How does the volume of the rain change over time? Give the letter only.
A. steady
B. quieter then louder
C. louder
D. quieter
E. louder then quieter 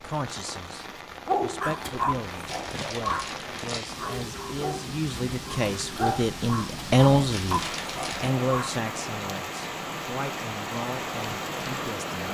C.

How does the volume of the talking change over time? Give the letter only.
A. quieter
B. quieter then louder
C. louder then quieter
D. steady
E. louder
C.